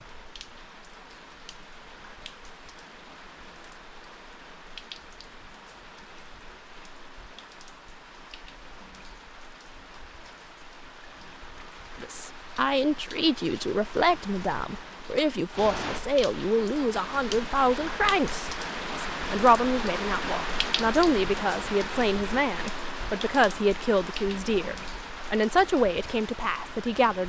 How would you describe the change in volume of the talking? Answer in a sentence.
The volume of the talking stays about the same.